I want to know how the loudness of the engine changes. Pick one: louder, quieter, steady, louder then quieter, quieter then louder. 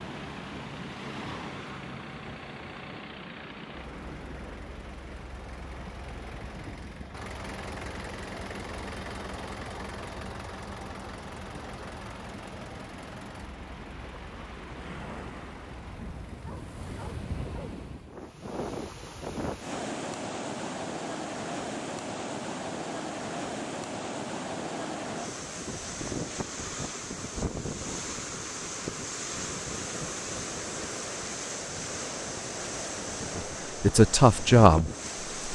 louder then quieter.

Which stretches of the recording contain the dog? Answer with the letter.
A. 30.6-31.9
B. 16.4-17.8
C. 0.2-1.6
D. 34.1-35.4
B.